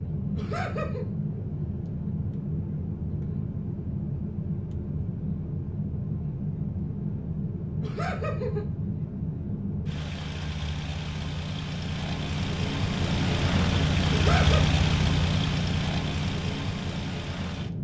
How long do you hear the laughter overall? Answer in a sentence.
You can hear the laughter for 2 seconds altogether.